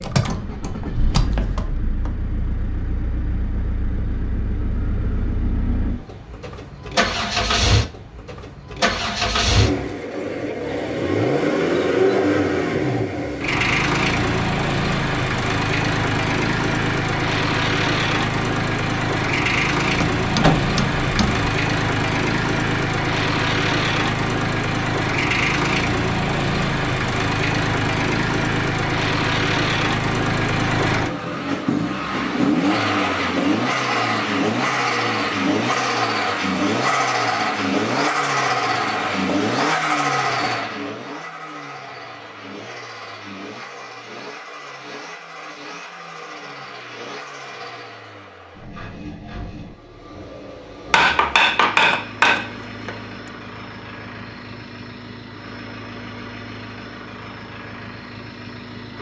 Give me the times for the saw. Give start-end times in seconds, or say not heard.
not heard.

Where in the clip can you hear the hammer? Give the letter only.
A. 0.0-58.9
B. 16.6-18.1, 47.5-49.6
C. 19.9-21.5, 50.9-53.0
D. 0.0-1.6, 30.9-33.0
C.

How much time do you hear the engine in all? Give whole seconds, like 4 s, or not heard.
59 s.